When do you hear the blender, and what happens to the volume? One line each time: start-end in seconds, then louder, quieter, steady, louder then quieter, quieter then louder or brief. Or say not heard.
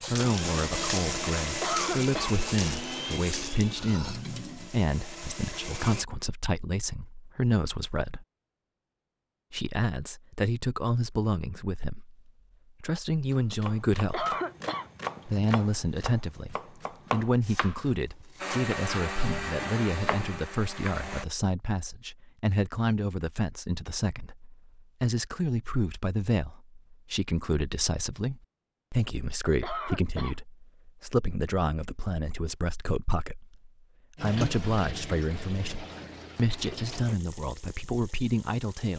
0.0-6.0 quieter
18.4-21.2 brief.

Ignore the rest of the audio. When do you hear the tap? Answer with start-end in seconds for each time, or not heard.
0.0-4.8, 34.1-38.9.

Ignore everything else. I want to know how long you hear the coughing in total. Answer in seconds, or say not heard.
2 s.